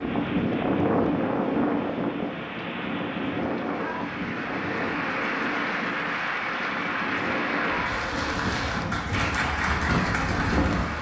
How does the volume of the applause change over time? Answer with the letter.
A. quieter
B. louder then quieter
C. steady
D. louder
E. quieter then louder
D.